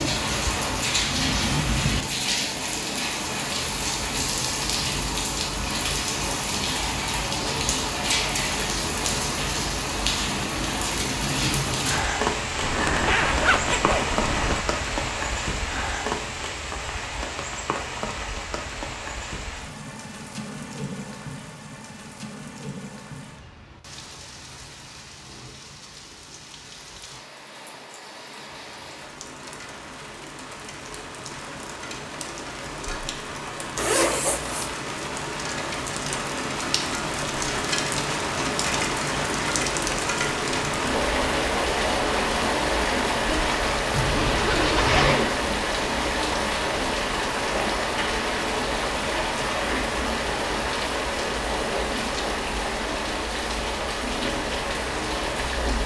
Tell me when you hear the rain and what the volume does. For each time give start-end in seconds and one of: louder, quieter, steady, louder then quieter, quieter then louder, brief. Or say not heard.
0.0-55.8 quieter then louder.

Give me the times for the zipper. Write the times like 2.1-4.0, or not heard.
12.6-14.7, 33.8-34.8, 43.9-45.4.